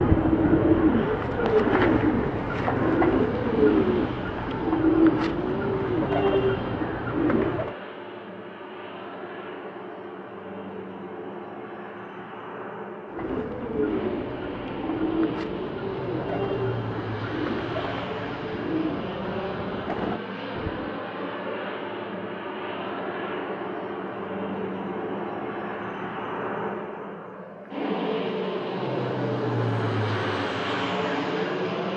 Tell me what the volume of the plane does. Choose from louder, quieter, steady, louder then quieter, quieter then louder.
louder.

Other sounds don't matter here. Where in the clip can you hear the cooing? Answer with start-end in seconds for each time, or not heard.
0.0-7.8, 13.1-21.0.